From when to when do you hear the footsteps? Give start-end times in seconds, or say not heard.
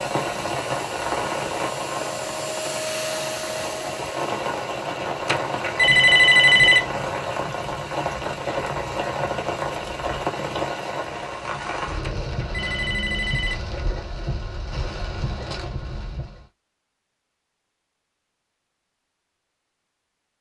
not heard.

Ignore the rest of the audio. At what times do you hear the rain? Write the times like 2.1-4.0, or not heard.
0.0-16.4.